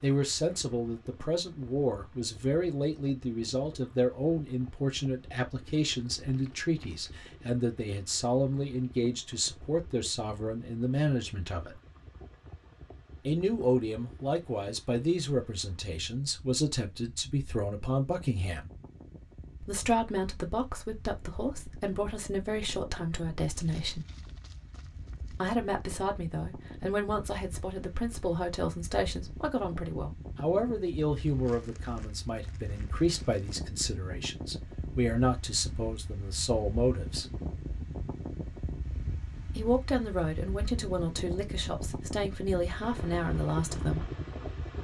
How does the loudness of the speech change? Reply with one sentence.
The volume of the speech stays about the same.